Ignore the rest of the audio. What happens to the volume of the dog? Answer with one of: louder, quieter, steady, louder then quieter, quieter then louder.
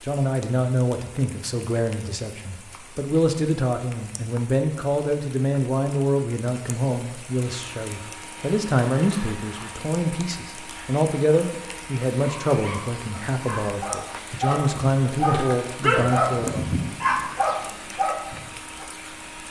louder.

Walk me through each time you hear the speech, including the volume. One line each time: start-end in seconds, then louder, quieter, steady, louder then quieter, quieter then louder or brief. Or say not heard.
0.1-16.6 steady.